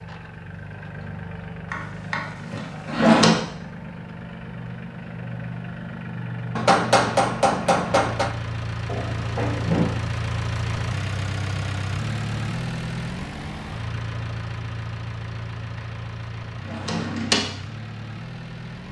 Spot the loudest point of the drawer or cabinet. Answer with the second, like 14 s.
3 s.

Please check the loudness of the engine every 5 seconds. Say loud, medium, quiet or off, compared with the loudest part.
medium, loud, loud, medium.